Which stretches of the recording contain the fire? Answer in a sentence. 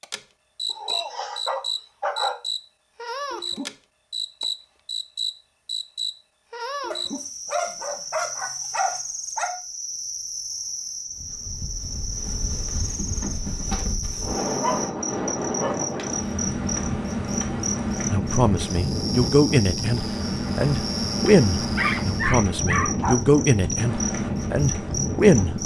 You can't hear the fire here.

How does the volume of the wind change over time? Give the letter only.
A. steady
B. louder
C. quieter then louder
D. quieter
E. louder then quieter
B.